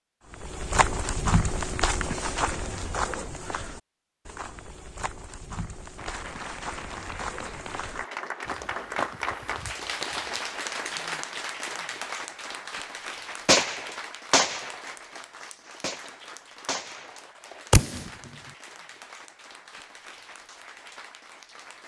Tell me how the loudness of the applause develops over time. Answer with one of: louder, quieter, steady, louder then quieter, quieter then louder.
quieter.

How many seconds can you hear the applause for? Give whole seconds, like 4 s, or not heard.
16 s.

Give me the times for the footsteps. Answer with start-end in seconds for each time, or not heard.
0.3-10.4.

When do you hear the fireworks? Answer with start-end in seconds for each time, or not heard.
13.4-14.8, 15.8-17.1, 17.7-18.1.